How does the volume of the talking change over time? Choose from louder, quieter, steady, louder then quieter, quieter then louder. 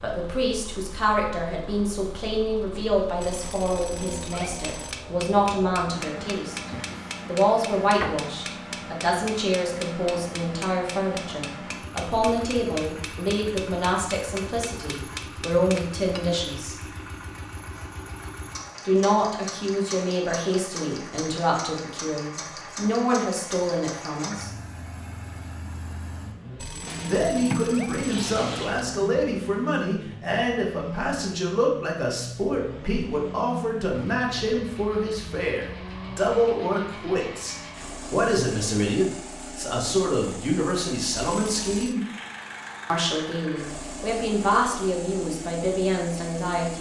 steady.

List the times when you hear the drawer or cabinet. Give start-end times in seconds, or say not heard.
6.6-8.2, 26.9-28.9.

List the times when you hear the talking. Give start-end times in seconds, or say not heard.
0.0-6.6, 7.2-16.8, 18.9-24.5, 27.1-42.0, 42.9-46.7.